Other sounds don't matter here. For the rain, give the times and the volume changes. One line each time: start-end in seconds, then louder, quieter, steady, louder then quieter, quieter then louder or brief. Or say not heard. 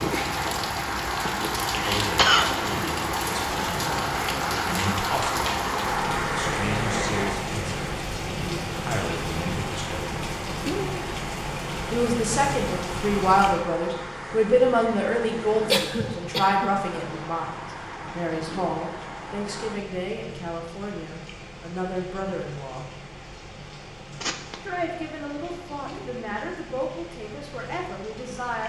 0.0-28.6 quieter.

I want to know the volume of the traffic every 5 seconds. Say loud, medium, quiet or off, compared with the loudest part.
loud, loud, medium, medium, off, off.